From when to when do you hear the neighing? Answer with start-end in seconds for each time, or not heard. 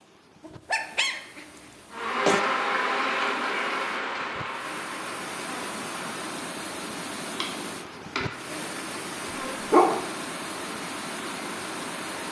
not heard.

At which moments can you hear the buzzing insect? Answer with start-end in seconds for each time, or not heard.
1.9-12.2.